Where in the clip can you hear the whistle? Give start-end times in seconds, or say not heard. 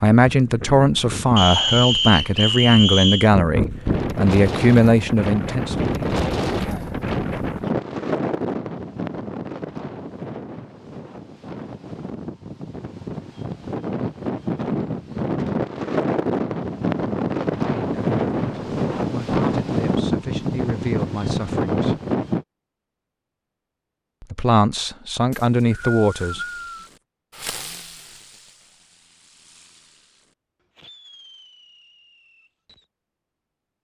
1.4-3.3, 25.3-26.9.